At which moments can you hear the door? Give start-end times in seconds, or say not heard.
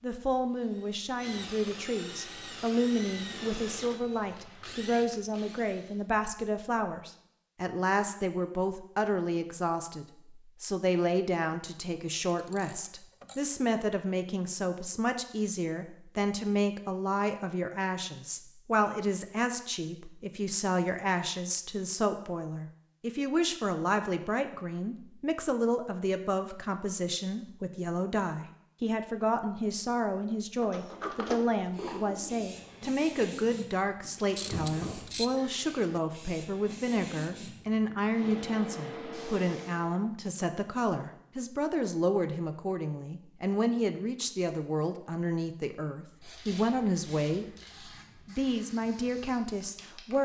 30.6-32.5.